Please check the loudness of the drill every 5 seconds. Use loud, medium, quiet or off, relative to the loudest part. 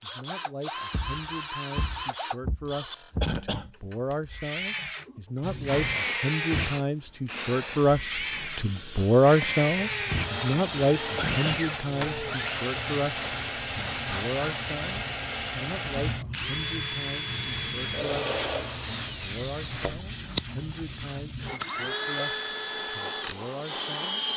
medium, loud, loud, loud, loud.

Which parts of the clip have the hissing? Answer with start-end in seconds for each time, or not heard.
5.4-24.3.